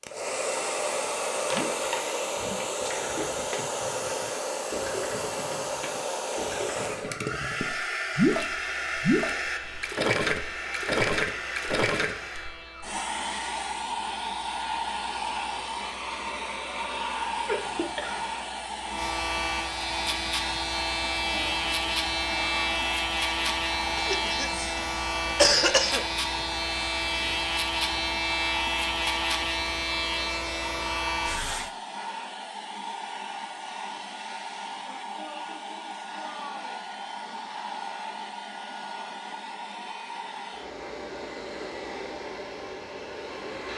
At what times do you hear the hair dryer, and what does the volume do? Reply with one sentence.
You can hear the hair dryer from 0.0 to 43.7 s, getting quieter.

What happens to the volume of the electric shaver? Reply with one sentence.
The volume of the electric shaver goes up.